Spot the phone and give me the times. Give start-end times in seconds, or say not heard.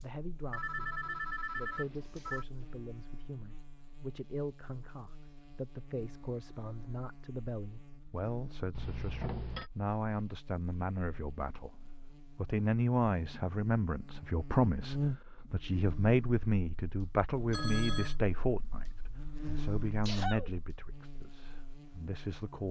0.5-2.5, 8.7-9.7, 17.5-18.1.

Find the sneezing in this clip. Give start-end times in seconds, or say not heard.
19.4-20.5.